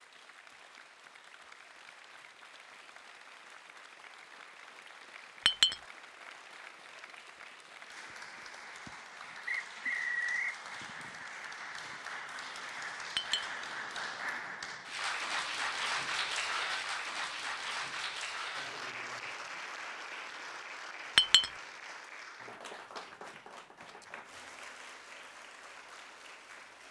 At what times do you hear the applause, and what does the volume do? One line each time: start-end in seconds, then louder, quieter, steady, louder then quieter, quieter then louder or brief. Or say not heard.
0.0-26.8 louder then quieter.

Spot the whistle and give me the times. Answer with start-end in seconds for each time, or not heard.
9.4-10.6.